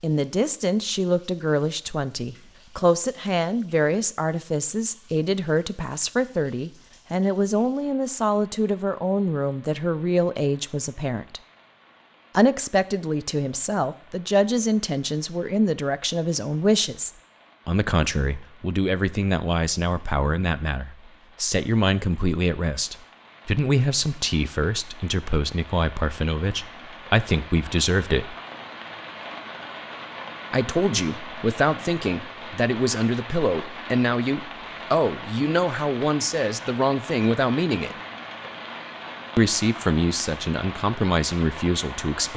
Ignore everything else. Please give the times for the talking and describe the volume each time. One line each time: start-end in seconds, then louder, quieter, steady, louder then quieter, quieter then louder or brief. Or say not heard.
0.0-11.4 steady
12.3-28.4 steady
30.5-38.0 steady
39.4-42.3 brief.